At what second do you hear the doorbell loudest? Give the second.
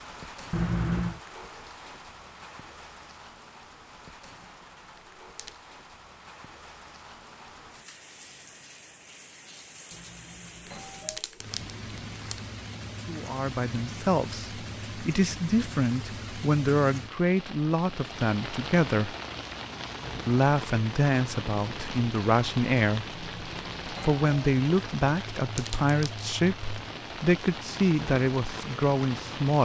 1 s.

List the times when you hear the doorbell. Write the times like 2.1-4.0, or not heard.
0.5-1.2, 9.9-11.2, 23.1-24.2.